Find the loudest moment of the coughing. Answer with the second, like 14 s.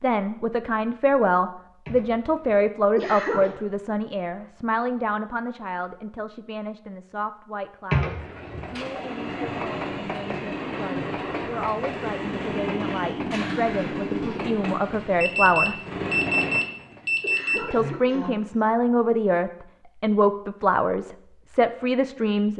8 s.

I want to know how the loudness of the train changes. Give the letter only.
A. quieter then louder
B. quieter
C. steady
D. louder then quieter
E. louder
C.